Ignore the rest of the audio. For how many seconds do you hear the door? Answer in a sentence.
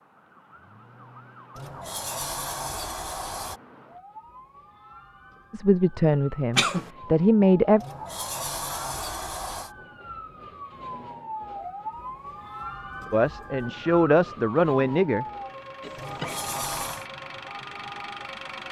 You can hear the door for 5 seconds altogether.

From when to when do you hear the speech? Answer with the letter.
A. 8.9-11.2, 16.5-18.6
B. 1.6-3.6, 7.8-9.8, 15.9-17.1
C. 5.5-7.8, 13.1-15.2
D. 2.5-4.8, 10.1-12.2
C.